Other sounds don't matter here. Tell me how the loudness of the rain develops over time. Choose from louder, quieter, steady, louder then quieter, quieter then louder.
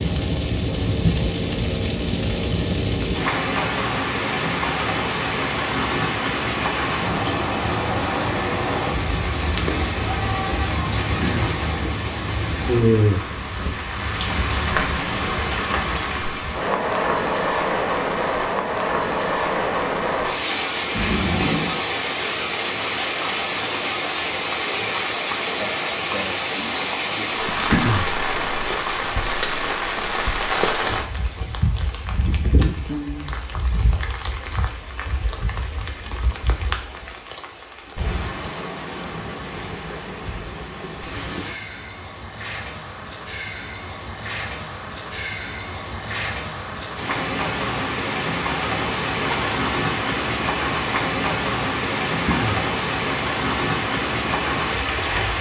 quieter then louder.